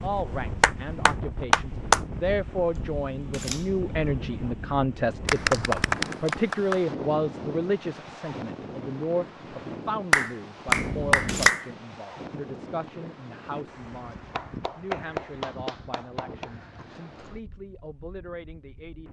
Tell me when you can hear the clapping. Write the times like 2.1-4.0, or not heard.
0.6-2.0, 5.2-6.8, 10.1-11.7, 14.3-16.5.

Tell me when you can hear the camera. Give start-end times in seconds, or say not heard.
2.7-4.8, 10.7-11.5.